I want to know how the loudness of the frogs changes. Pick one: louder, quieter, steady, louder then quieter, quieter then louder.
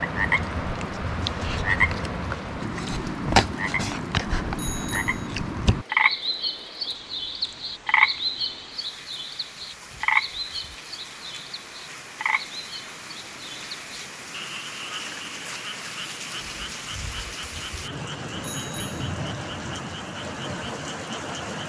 quieter.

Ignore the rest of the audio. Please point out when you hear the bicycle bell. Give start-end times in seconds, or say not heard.
4.5-5.3, 18.4-19.0.